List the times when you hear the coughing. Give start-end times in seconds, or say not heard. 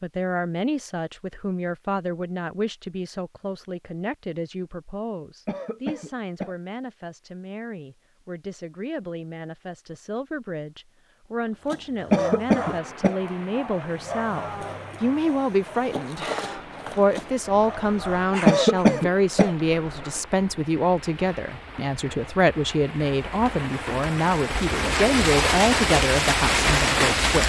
5.5-6.5, 12.1-13.2, 18.4-19.6.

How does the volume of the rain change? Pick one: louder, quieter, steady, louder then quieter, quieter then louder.
louder.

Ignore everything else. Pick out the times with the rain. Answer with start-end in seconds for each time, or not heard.
12.6-27.4.